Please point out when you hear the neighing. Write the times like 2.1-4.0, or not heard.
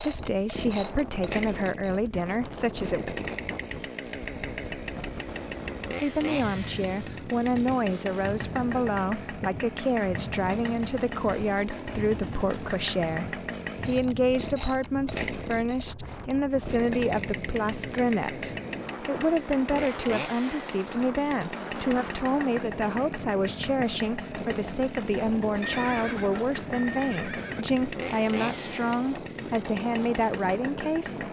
25.6-27.6.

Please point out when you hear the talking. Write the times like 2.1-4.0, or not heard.
0.0-3.0, 6.0-31.2.